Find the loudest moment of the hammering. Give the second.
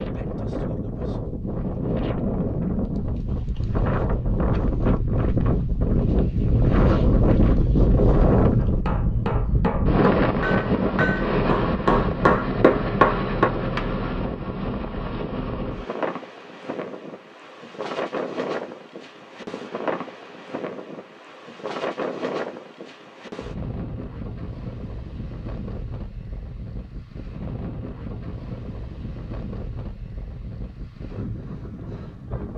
13 s.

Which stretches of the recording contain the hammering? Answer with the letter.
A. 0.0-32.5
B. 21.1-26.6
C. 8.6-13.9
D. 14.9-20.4
C.